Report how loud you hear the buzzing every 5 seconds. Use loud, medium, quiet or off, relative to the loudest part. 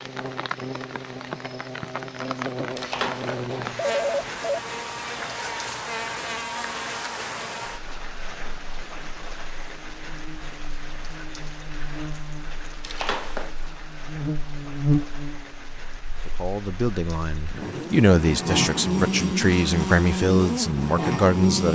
medium, medium, medium, loud, loud.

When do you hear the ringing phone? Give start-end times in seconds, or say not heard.
2.8-4.4, 12.8-13.6.